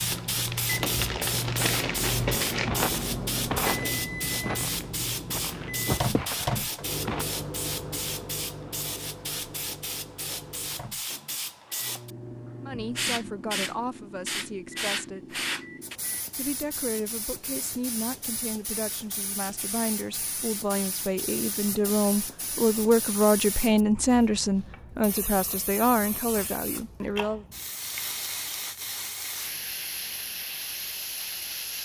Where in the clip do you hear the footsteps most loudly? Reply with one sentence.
The volume of the footsteps peaks at 4 seconds.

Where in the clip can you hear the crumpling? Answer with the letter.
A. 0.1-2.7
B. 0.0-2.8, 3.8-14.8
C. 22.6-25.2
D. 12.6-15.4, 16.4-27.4
A.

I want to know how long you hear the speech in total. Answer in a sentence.
The speech can be heard for 14 seconds in total.